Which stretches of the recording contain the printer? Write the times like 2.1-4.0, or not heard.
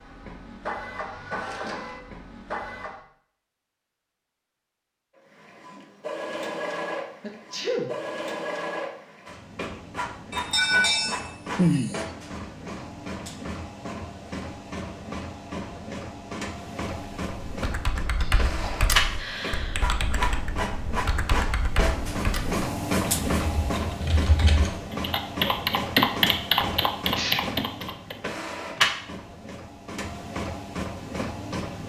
0.0-3.0, 5.2-31.8.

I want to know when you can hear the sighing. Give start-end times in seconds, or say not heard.
10.3-12.0, 19.1-19.8.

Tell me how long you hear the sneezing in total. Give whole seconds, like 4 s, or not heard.
2 s.